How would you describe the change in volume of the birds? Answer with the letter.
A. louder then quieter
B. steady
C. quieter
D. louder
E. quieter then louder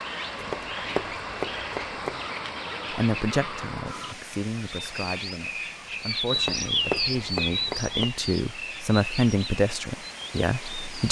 A.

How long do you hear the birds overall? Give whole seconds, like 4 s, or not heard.
11 s.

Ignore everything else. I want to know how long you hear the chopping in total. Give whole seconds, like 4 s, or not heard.
4 s.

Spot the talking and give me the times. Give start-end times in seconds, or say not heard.
2.9-11.0.